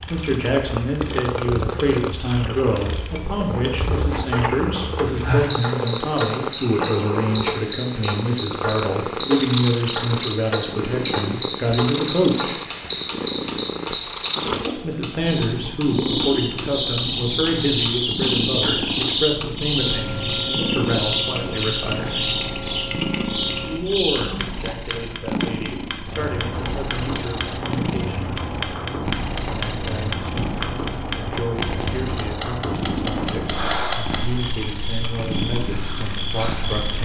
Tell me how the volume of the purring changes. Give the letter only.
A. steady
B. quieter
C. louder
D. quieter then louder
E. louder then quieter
A.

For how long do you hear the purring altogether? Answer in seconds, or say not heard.
37 s.